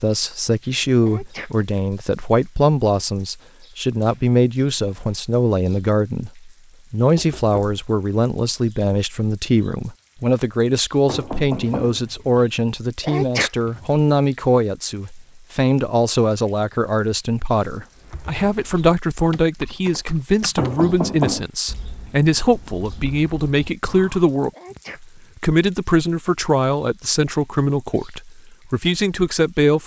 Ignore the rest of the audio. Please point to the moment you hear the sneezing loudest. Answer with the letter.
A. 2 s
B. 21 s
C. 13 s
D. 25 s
C.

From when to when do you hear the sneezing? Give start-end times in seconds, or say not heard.
1.0-1.7, 13.0-13.8, 24.5-25.4.